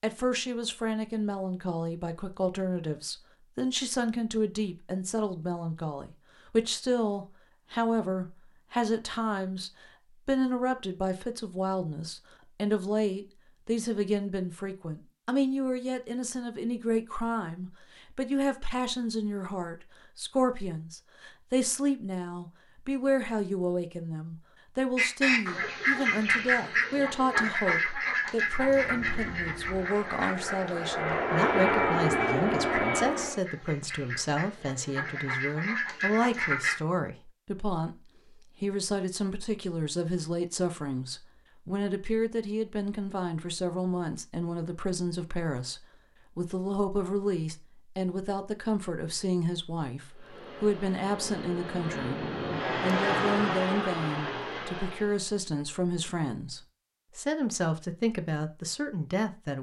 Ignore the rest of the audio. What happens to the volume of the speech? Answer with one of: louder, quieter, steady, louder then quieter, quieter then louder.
steady.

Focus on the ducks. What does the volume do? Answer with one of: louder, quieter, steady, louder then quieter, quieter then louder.
quieter then louder.